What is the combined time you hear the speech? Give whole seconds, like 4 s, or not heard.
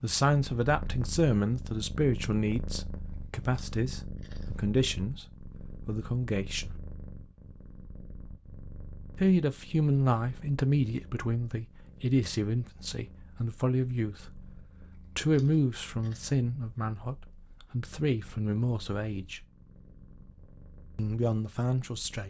18 s.